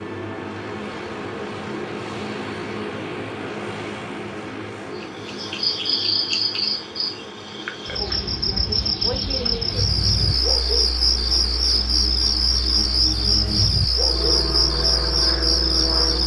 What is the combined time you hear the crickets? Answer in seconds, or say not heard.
11 s.